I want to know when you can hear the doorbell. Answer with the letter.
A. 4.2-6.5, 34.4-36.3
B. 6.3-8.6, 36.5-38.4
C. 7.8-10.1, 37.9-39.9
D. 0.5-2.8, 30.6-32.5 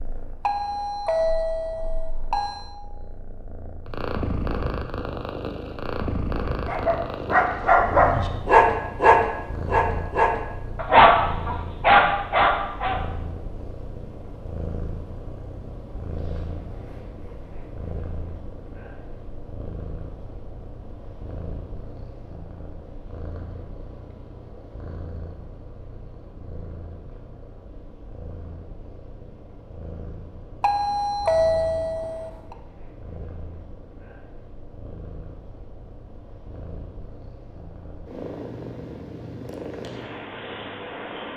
D.